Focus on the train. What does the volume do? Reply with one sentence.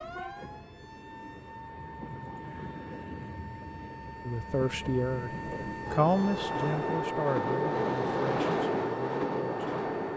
The volume of the train goes up.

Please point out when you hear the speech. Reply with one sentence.
You can hear the speech from 4.2 to 9.8 s.